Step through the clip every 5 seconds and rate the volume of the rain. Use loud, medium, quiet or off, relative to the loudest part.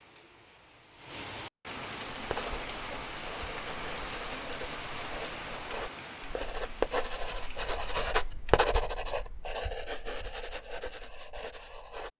loud, loud, off.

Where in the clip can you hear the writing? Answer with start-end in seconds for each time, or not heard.
2.1-12.1.